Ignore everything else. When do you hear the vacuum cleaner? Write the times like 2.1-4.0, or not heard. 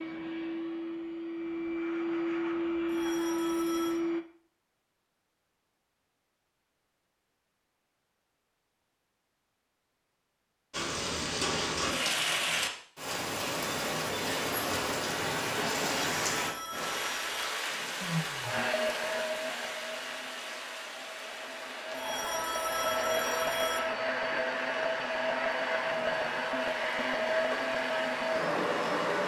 0.0-4.2, 18.0-29.2.